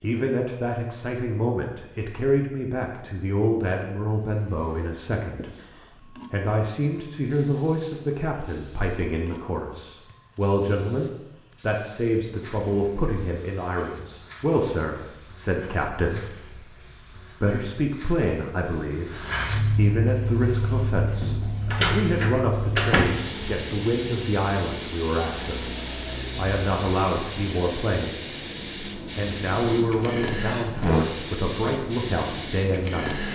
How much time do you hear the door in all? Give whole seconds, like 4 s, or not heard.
2 s.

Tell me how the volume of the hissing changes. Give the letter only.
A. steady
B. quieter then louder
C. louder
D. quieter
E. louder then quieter
C.